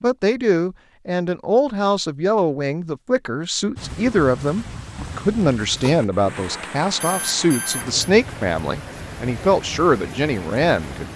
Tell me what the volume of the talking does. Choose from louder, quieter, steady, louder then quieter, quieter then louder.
steady.